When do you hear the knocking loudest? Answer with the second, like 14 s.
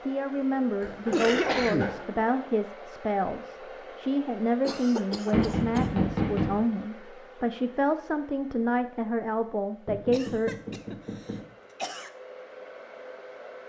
6 s.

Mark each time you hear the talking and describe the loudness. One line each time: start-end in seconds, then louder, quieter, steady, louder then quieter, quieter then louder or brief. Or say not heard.
0.0-10.5 steady.